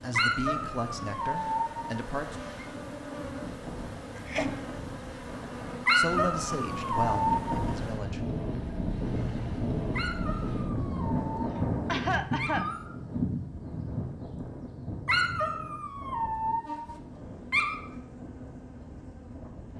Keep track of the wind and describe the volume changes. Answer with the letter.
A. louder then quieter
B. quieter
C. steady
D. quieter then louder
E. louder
A.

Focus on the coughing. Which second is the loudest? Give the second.
12 s.